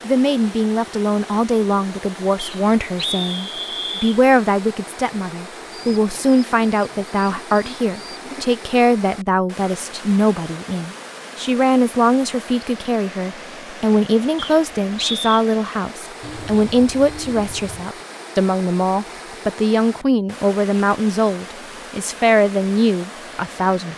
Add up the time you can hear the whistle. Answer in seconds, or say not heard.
3 s.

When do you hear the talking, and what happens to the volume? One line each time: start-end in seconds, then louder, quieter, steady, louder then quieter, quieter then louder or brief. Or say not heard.
0.1-23.9 steady.